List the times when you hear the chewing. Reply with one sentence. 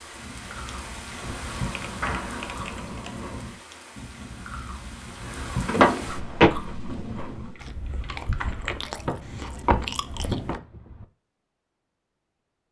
The chewing can be heard from 0.1 to 10.6 s.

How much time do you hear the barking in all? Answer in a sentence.
You can't hear the barking here.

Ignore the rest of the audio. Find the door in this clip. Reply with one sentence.
You can hear the door from 2.0 to 2.5 s, from 5.7 to 6.5 s and from 9.1 to 11.1 s.